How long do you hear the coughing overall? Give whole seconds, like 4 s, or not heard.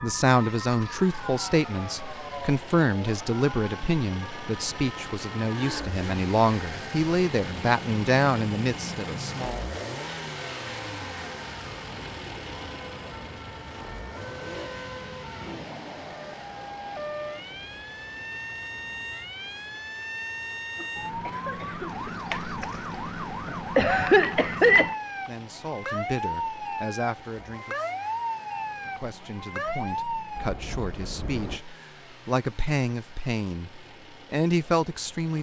3 s.